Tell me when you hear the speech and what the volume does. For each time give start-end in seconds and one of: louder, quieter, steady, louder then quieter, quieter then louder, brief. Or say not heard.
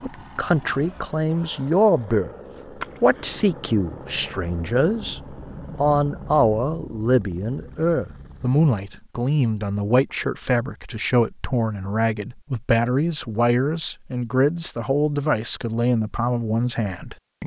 0.0-2.3 brief
3.0-5.2 brief
5.8-17.4 steady.